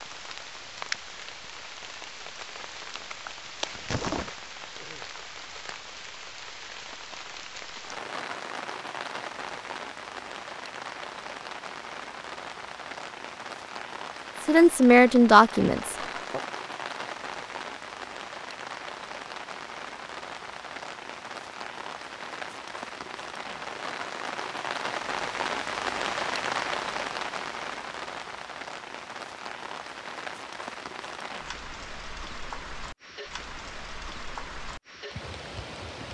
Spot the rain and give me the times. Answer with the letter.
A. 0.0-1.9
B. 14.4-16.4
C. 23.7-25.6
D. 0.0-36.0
D.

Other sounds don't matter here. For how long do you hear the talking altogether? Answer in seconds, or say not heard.
2 s.